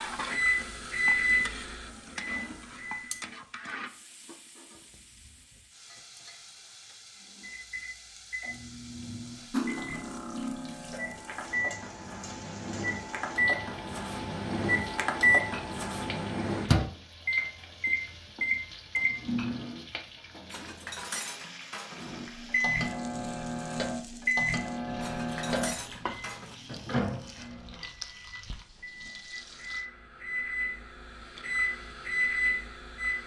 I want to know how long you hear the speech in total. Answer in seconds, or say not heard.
not heard.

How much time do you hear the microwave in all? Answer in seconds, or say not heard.
27 s.